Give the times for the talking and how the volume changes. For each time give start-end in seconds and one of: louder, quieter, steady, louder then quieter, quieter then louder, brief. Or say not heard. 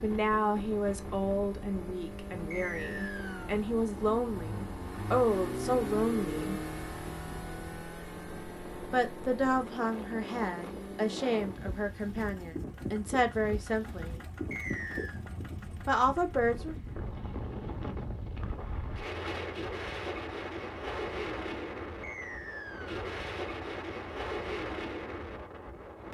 0.0-6.6 quieter then louder
8.9-14.2 quieter then louder
15.8-16.8 brief.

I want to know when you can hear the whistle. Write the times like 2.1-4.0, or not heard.
2.5-3.5, 14.5-15.2, 22.0-23.0.